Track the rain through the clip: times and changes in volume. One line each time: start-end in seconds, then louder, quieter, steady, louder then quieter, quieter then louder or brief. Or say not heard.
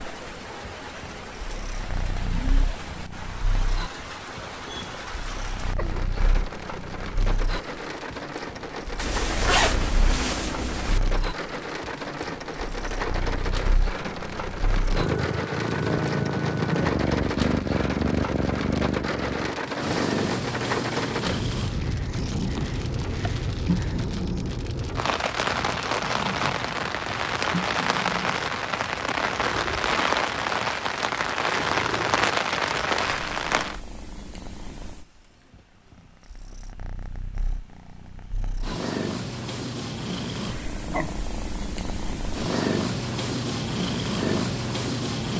0.0-33.8 louder.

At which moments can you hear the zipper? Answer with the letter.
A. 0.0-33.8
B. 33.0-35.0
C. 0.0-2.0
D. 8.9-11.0
D.